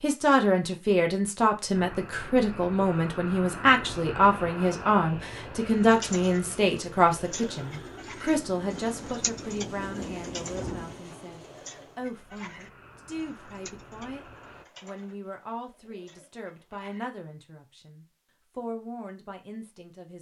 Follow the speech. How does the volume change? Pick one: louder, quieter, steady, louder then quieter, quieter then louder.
quieter.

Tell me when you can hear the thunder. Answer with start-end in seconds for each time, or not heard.
8.3-11.0.